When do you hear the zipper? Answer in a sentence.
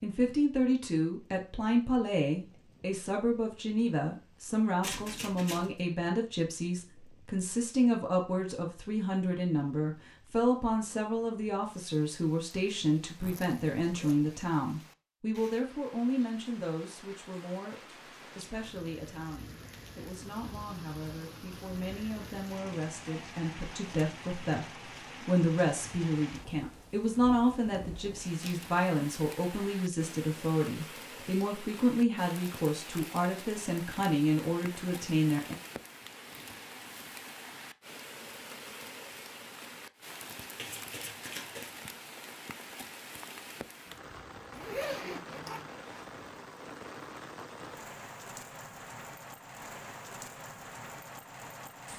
The zipper can be heard from 13.2 to 14.2 s and from 44.5 to 46.0 s.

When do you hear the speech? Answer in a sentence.
You can hear the speech from 0.0 to 35.5 s.